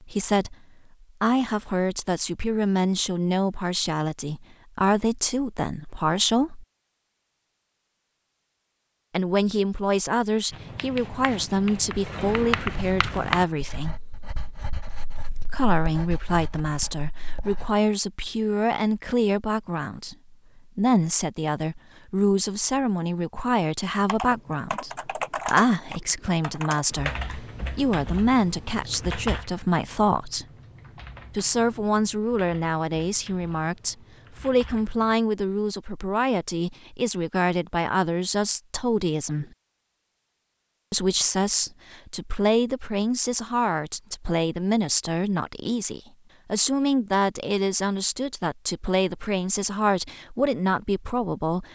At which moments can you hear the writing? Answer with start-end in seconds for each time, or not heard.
10.5-17.7.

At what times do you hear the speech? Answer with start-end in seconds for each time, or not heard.
0.0-0.6, 1.2-6.7, 9.1-13.9, 15.4-30.4, 31.4-39.5, 40.9-51.6.